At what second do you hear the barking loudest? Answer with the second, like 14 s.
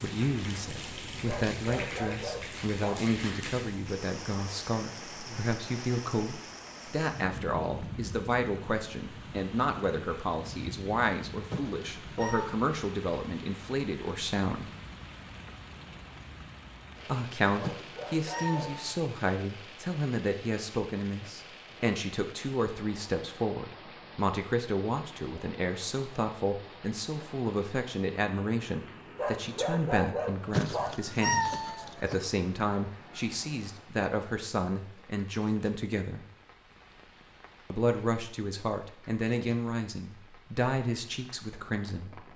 30 s.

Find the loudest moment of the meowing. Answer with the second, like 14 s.
31 s.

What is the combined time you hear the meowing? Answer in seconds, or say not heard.
4 s.